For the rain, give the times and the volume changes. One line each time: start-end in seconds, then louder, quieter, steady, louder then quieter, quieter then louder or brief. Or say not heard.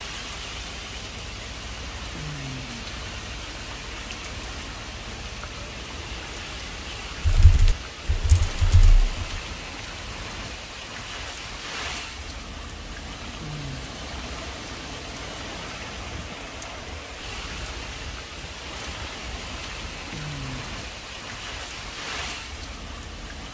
0.0-23.4 steady.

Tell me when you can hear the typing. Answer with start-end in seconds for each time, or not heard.
7.2-9.2.